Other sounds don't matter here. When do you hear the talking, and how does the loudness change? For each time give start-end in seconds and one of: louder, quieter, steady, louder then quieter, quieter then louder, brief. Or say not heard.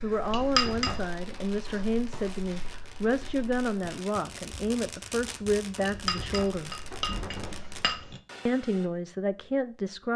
0.0-6.8 steady
8.4-10.1 brief.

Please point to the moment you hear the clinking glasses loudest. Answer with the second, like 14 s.
1 s.